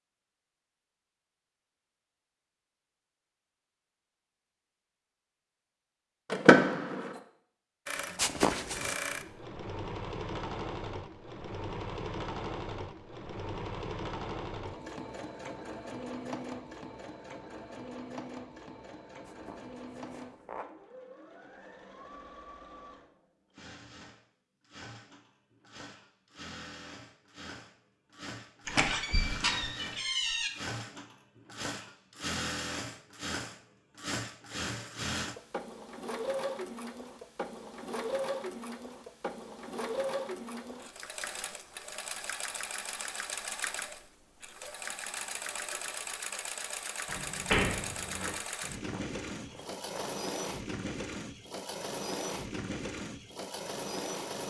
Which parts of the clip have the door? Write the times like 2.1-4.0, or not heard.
6.3-7.1, 28.6-30.5, 47.0-48.4.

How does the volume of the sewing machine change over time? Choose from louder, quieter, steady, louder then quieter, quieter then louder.
quieter then louder.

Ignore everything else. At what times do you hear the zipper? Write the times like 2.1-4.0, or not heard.
8.2-8.9, 19.2-20.6, 48.7-50.1.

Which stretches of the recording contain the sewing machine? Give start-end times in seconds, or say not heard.
7.8-54.4.